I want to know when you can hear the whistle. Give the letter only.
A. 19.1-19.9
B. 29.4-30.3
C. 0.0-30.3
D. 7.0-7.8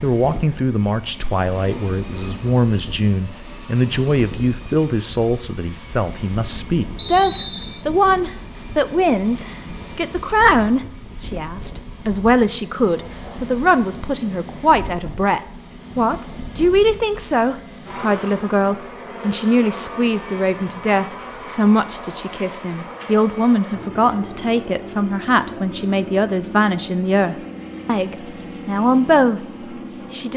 D.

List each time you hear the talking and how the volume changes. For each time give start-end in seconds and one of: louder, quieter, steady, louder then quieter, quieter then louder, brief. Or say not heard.
0.0-30.3 steady.